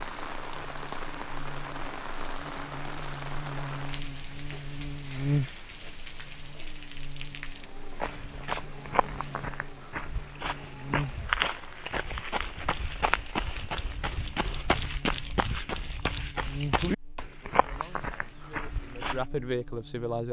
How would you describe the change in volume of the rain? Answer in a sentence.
The volume of the rain goes down.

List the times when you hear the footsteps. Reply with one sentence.
You can hear the footsteps from 7.9 to 19.2 s.